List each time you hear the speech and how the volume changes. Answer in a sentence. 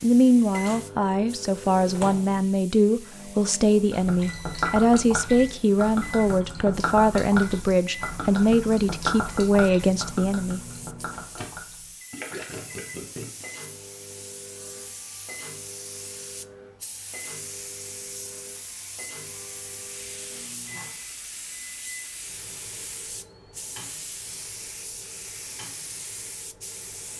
You can hear the speech from 0.0 to 10.6 s, at a steady volume.